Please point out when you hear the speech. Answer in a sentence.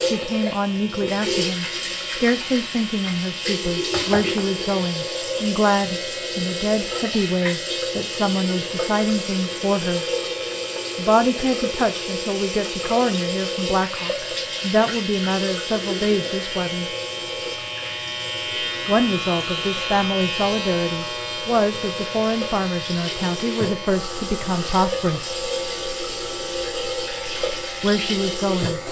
You can hear the speech from 0.0 to 10.1 s, from 10.9 to 16.9 s, from 18.9 to 25.4 s and from 27.8 to 28.8 s.